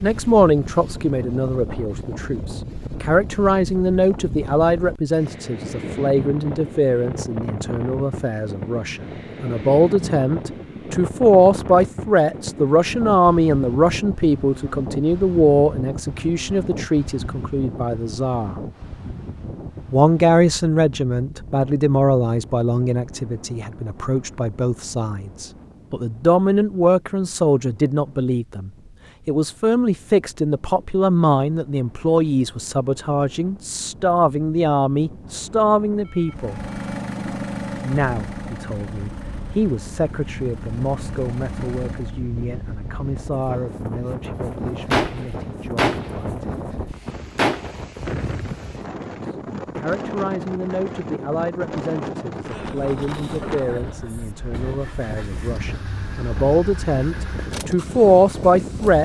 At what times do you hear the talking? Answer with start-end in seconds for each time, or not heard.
0.0-18.6, 19.9-36.6, 37.8-46.6, 49.2-59.0.